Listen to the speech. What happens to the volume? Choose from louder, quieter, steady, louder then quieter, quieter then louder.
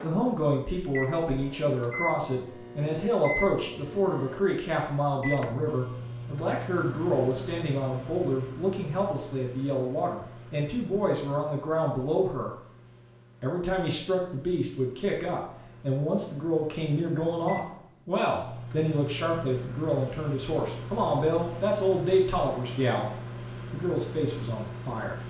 steady.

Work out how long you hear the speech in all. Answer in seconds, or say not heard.
24 s.